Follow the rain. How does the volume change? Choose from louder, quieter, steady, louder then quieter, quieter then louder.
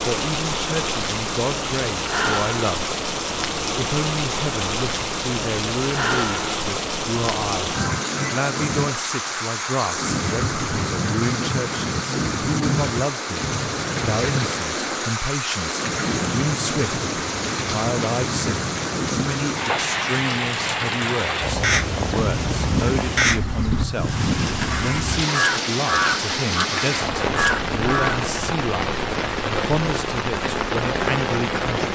steady.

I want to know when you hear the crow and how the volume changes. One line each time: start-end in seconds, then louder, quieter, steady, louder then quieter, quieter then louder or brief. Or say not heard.
21.6-28.2 steady.